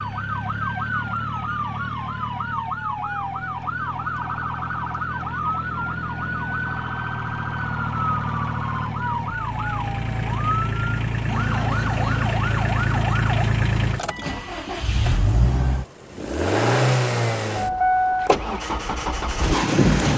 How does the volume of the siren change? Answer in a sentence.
The loudness of the siren stays about the same.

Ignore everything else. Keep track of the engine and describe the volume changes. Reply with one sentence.
The volume of the engine goes up.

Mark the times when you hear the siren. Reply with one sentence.
The siren can be heard from 0.0 to 13.4 s.